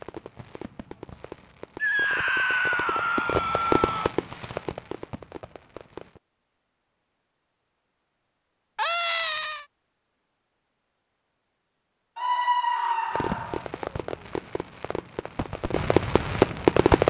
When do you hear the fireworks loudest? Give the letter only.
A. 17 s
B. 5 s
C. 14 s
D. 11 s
A.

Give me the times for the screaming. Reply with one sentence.
You can hear the screaming from 1.8 to 4.1 s, from 8.8 to 9.7 s and from 12.2 to 13.7 s.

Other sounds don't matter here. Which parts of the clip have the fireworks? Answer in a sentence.
The fireworks can be heard from 0.0 to 6.2 s and from 13.1 to 17.0 s.